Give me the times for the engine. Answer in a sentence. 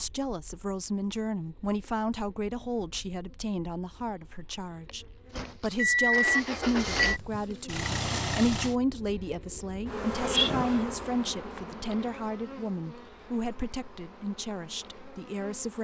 You can hear the engine from 5.3 to 8.8 s.